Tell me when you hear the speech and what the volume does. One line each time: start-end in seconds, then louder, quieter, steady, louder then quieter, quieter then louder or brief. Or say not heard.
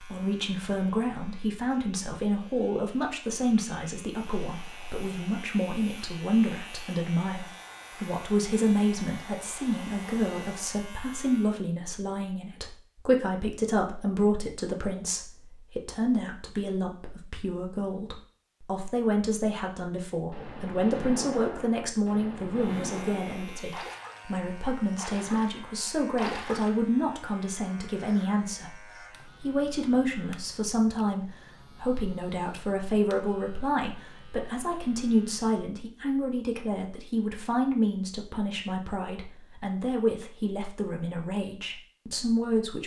0.0-42.8 steady.